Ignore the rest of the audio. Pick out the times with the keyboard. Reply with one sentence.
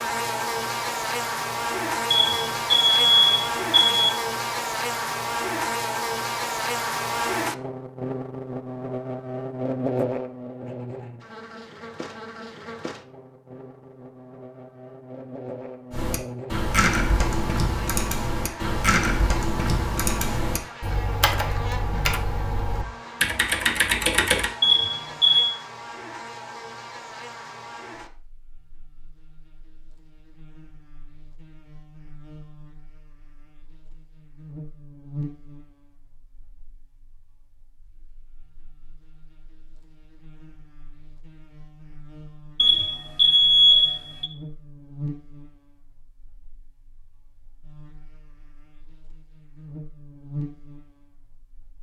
The keyboard can be heard from 15.9 to 24.5 s.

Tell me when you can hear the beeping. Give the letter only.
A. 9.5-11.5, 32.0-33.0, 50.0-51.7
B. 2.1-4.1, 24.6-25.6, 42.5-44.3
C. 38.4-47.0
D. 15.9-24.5
B.